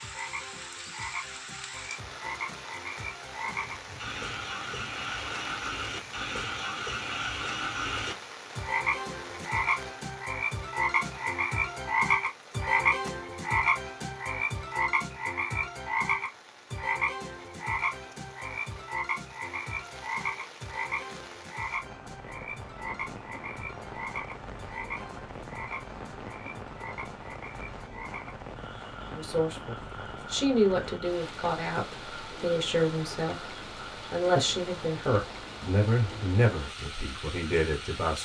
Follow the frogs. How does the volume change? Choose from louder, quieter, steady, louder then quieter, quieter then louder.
louder then quieter.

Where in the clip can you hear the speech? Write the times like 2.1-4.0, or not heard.
29.1-38.1.